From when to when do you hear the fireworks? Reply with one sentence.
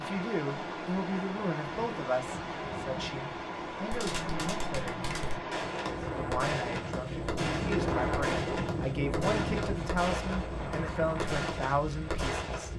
You can hear the fireworks from 3.9 to 12.7 s.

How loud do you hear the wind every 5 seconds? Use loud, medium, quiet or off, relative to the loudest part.
loud, loud, medium.